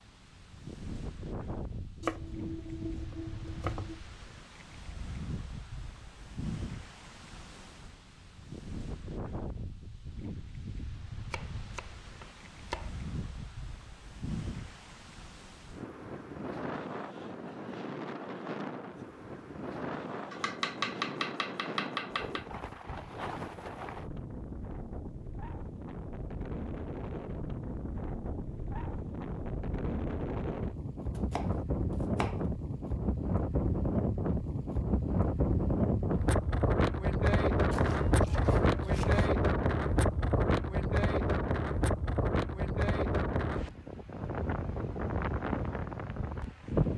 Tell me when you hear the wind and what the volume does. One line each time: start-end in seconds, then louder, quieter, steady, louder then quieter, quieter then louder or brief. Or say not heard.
0.0-46.9 louder.